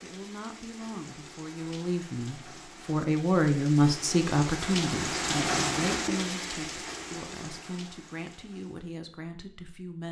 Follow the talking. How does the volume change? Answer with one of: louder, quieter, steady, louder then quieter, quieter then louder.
louder then quieter.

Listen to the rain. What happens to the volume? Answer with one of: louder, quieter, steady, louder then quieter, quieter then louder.
louder then quieter.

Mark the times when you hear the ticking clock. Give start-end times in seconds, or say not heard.
not heard.